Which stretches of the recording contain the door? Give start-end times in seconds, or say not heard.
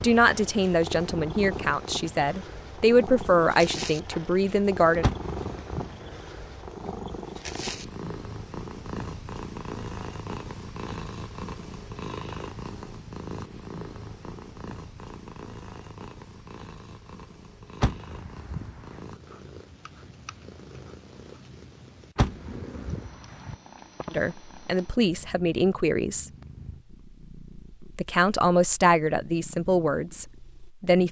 5.0-6.0, 17.8-19.0, 22.1-23.6.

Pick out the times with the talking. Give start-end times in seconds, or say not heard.
0.0-5.1, 24.1-26.3, 27.8-31.0.